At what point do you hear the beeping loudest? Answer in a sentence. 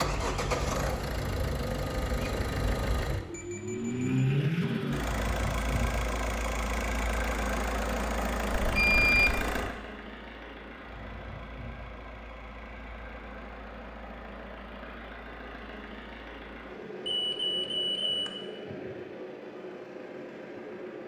The loudest moment of the beeping is at 9 seconds.